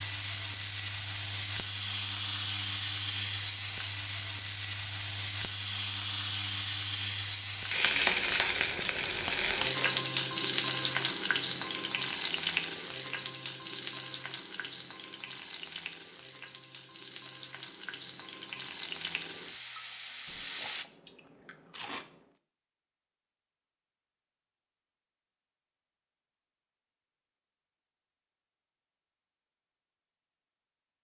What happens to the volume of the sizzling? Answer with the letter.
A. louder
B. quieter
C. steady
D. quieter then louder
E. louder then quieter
B.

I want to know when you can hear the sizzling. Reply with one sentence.
You can hear the sizzling from 0.0 to 20.9 s.